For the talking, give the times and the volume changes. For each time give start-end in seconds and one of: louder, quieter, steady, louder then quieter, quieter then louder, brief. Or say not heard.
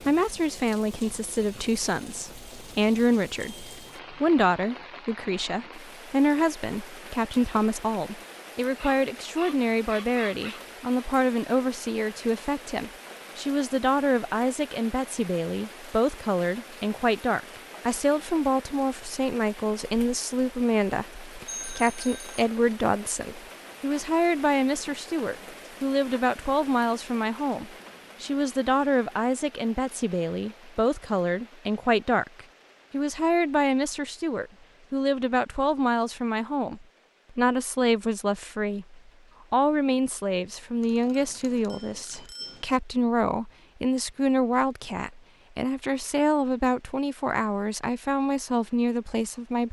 0.1-49.6 steady.